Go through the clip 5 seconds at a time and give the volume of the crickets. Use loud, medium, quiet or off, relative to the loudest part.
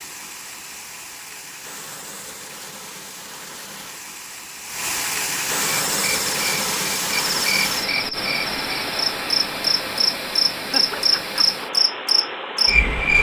off, medium, loud.